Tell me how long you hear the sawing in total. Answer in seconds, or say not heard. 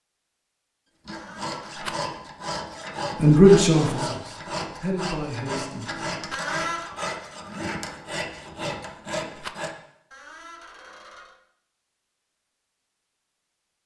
9 s.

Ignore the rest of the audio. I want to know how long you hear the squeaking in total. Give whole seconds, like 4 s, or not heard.
3 s.